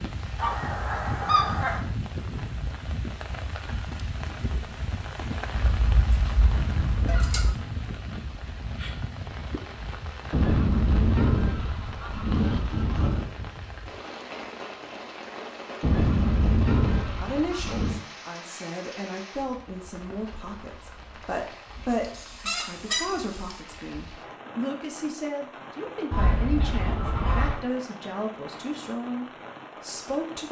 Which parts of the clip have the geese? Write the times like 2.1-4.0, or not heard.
0.3-1.8, 5.5-7.5, 10.3-13.3, 15.8-18.0, 22.0-23.6, 26.1-27.6.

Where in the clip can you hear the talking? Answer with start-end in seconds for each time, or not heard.
17.1-30.4.